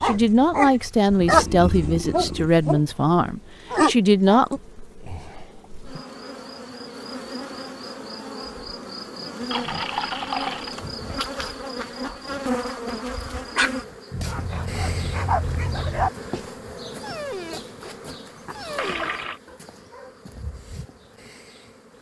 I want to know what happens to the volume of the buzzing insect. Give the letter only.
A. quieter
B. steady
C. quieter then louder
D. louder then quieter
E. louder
D.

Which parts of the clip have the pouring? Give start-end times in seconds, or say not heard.
1.3-2.5, 9.5-10.8, 18.8-19.4.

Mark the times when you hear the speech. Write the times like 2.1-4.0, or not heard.
0.0-4.6.